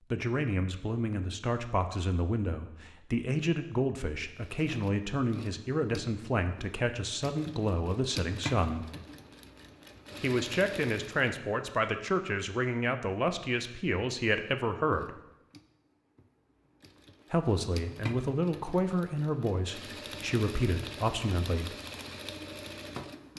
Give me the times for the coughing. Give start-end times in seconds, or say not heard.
not heard.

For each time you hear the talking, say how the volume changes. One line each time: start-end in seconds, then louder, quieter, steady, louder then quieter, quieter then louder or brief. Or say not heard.
0.1-8.8 steady
10.2-15.2 steady
17.3-21.8 steady.